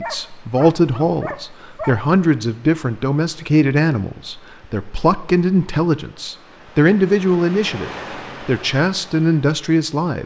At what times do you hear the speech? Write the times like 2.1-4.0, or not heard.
0.0-10.2.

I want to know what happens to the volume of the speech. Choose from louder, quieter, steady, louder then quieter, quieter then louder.
steady.